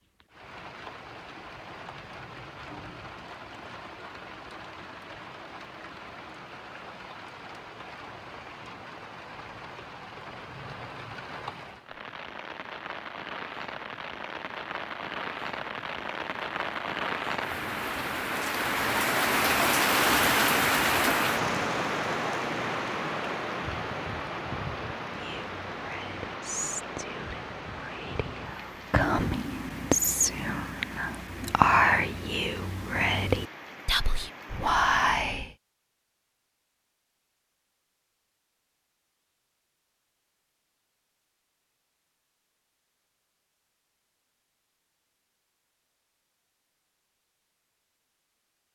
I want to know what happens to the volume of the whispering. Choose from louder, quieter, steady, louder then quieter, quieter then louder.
louder.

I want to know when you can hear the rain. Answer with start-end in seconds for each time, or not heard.
0.2-34.8.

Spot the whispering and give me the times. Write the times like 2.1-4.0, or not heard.
25.1-35.5.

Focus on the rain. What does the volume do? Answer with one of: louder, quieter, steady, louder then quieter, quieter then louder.
louder then quieter.